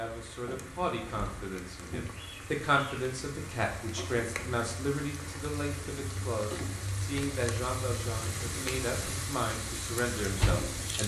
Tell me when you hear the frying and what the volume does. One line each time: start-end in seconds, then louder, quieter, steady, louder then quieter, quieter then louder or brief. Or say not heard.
0.0-11.0 louder.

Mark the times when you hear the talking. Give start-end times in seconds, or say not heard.
0.0-11.0.